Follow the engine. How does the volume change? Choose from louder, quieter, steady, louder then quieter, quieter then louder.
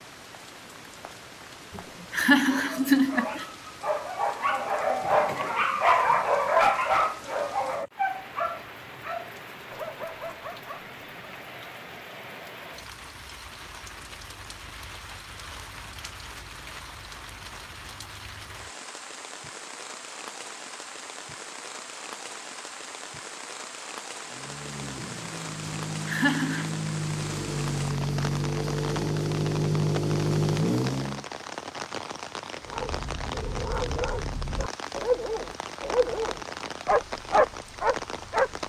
louder.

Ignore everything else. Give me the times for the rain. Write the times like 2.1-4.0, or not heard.
0.0-38.6.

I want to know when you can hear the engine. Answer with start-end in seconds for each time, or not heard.
24.2-31.2.